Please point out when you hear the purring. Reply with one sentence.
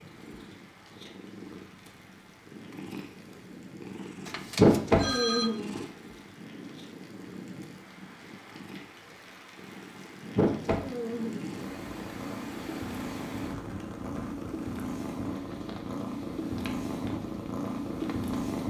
The purring can be heard from 0.0 to 18.6 s.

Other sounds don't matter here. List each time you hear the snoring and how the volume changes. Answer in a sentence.
The snoring can't be heard in this clip.